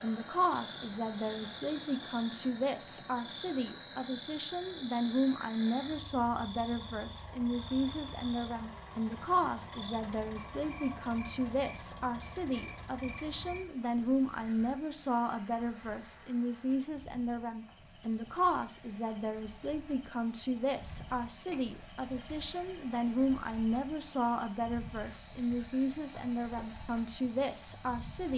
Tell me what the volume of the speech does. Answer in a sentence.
The loudness of the speech stays about the same.